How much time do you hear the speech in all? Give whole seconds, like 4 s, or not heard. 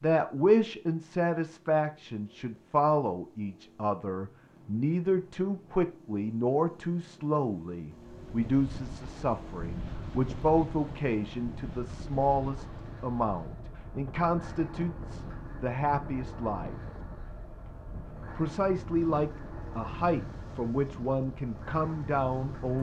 21 s.